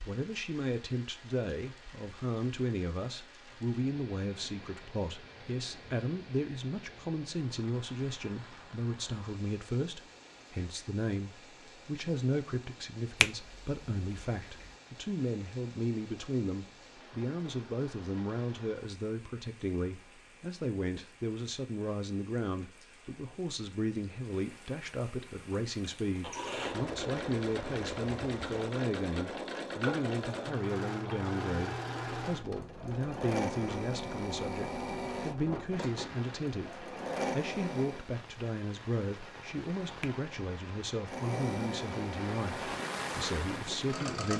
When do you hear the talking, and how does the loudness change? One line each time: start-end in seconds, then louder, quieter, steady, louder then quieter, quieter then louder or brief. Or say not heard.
0.1-44.3 steady.